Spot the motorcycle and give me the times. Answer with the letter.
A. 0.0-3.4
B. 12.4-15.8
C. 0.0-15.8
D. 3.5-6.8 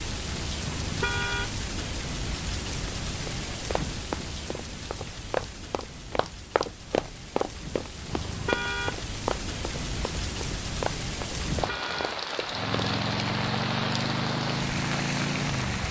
B.